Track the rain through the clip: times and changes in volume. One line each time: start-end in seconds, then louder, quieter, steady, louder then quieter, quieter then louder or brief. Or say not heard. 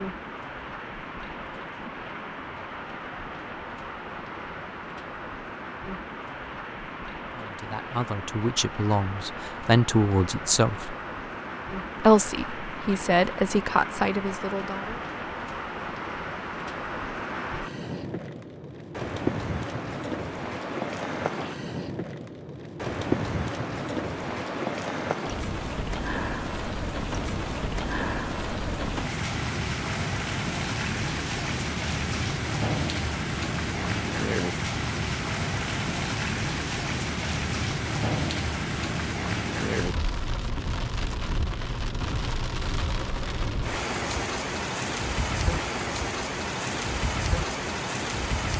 0.0-48.5 louder.